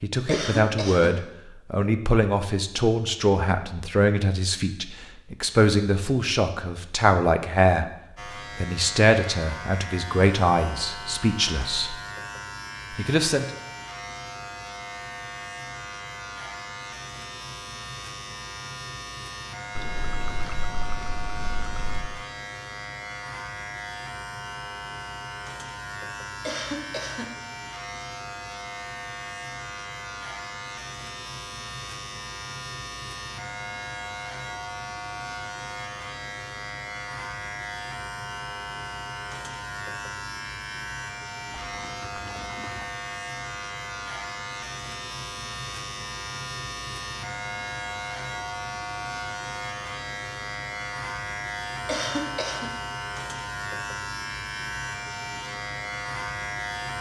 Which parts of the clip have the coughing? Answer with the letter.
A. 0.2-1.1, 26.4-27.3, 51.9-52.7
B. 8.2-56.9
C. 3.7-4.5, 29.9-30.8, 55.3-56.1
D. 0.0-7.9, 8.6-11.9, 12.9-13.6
A.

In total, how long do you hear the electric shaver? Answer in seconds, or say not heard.
49 s.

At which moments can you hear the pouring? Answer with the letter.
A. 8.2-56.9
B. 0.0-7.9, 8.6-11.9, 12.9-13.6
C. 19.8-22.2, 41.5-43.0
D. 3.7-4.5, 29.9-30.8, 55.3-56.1
C.